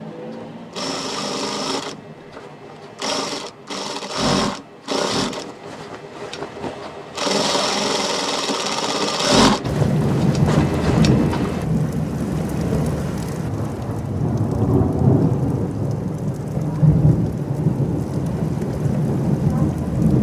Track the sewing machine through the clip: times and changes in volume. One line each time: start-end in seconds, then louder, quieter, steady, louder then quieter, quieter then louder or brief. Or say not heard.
0.0-11.7 louder.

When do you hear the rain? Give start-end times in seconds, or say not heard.
9.6-20.1.